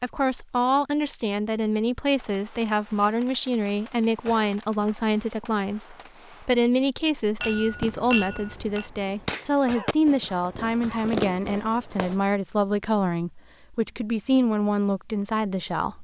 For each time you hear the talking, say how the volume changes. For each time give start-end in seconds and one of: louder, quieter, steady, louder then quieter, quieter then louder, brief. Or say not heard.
0.0-15.9 steady.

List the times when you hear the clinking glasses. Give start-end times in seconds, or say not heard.
7.4-8.9.